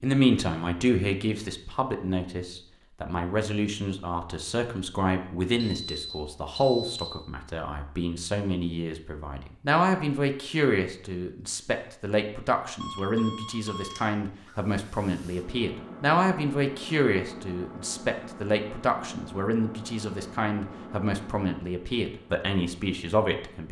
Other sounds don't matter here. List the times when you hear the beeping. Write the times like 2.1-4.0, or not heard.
5.6-7.2, 12.8-14.6.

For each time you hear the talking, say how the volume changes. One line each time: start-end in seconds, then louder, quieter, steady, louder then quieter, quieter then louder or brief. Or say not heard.
0.0-23.6 steady.